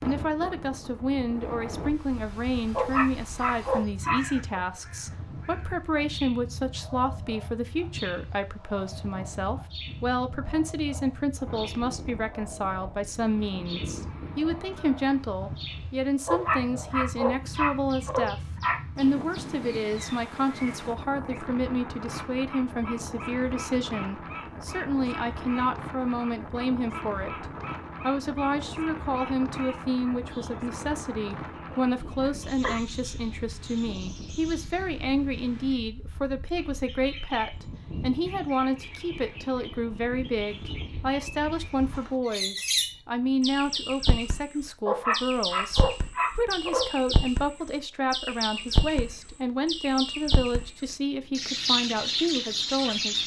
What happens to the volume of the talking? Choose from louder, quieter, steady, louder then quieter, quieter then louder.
steady.